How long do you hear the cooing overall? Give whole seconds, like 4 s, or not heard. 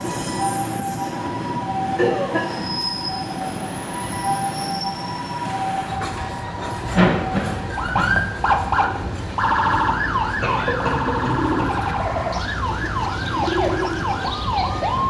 6 s.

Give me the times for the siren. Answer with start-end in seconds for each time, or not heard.
0.0-15.0.